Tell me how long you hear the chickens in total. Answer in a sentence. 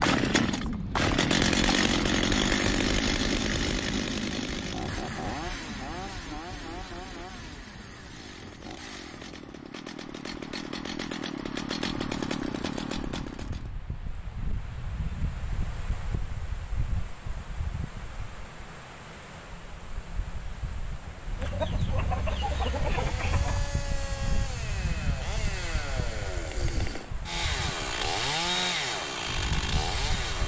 The chickens can be heard for 2 seconds in total.